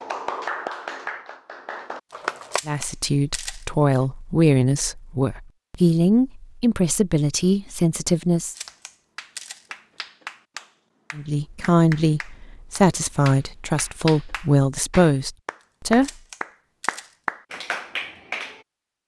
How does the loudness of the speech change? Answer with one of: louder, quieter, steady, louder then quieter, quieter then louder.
steady.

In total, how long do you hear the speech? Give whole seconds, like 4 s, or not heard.
11 s.